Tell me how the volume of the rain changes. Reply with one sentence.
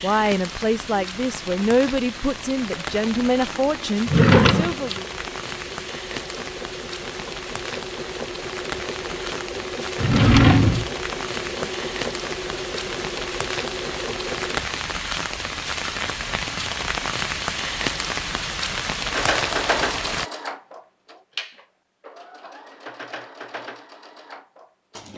The loudness of the rain goes up.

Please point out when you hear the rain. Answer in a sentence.
You can hear the rain from 0.0 to 20.3 s.